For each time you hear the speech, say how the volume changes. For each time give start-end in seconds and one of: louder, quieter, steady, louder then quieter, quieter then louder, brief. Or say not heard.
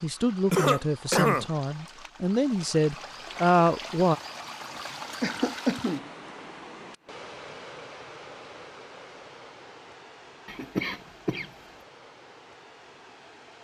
0.0-4.2 louder.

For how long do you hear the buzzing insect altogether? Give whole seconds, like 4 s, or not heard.
not heard.